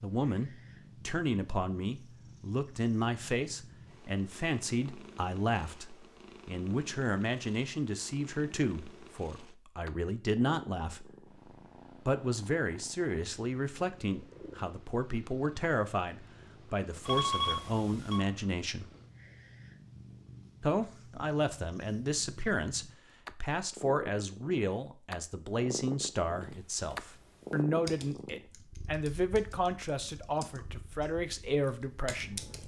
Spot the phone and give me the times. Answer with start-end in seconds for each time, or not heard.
17.1-18.2.